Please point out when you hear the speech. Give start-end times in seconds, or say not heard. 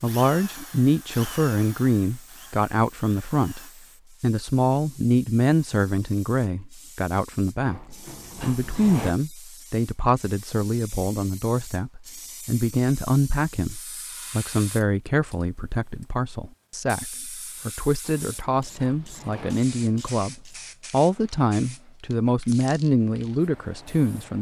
0.0-24.3.